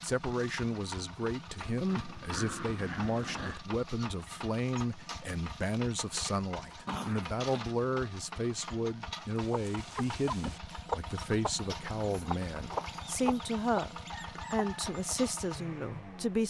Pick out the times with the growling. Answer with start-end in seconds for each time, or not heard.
1.9-3.6, 6.8-7.7, 11.7-13.2.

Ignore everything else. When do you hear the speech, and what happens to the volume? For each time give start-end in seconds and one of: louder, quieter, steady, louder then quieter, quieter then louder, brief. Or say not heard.
0.0-16.4 steady.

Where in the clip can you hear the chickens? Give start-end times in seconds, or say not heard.
9.3-15.2.